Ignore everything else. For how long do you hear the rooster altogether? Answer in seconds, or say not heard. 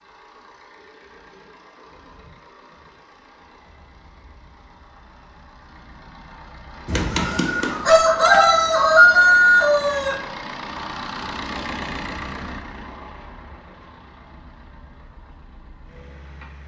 3 s.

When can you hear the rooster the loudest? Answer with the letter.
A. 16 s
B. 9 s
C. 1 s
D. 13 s
B.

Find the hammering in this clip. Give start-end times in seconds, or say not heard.
not heard.